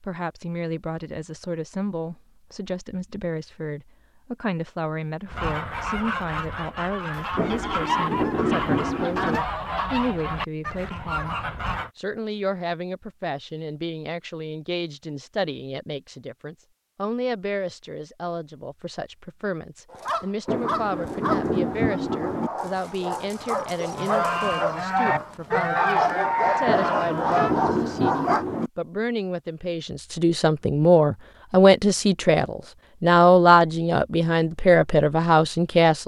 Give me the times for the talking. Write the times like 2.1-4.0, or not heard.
0.0-36.0.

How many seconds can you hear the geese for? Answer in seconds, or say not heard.
10 s.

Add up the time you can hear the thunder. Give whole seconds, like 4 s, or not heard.
6 s.